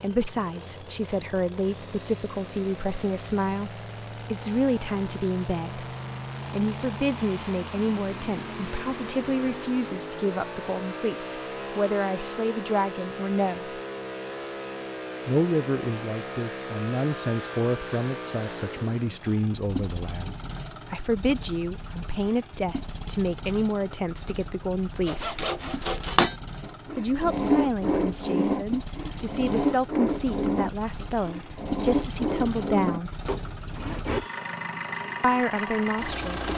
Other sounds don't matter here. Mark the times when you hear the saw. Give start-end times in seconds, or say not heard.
25.1-34.2.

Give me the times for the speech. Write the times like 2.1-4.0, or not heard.
0.0-5.8, 6.5-13.7, 15.2-25.4, 26.9-33.1, 35.2-36.5.